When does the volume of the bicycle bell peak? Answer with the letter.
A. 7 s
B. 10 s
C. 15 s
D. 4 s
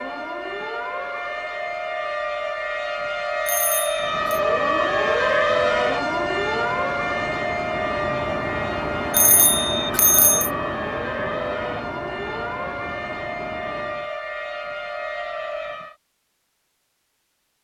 B.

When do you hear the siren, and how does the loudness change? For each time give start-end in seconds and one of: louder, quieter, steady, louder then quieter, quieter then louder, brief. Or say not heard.
0.0-15.9 louder then quieter.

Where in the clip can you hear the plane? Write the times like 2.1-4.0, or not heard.
3.9-14.1.